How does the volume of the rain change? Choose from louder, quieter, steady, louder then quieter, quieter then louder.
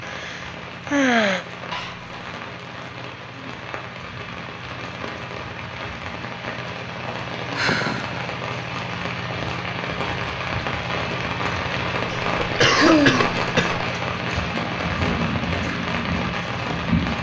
louder.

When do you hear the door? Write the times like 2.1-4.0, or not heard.
not heard.